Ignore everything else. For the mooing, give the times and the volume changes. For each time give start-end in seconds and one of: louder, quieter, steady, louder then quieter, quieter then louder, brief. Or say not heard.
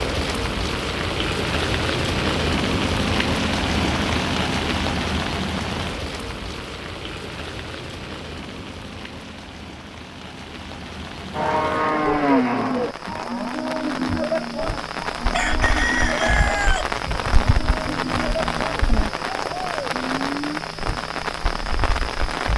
11.3-20.6 quieter.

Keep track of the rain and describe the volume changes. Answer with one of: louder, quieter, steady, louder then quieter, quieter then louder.
quieter then louder.